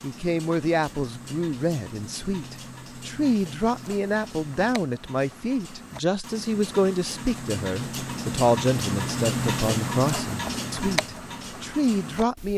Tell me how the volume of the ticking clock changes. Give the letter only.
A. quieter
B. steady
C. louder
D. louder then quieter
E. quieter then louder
C.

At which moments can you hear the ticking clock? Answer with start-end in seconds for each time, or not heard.
0.0-12.5.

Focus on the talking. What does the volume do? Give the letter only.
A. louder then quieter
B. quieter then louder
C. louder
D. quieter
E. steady
E.